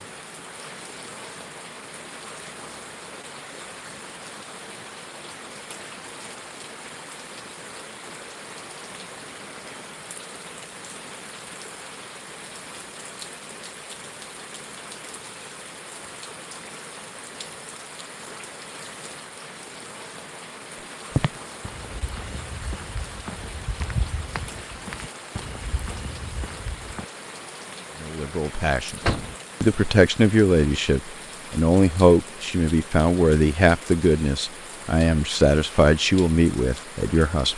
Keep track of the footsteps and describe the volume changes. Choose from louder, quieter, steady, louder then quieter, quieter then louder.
louder then quieter.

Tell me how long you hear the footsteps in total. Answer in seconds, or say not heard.
6 s.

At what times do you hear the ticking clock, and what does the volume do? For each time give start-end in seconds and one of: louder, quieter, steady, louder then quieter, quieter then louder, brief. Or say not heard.
not heard.